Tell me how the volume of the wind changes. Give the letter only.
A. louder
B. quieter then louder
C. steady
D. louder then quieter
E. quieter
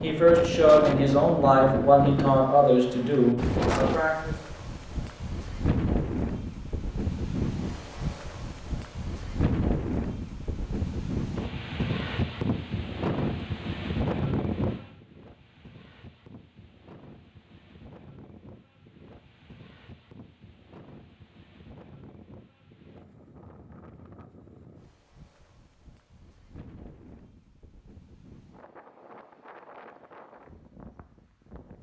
E.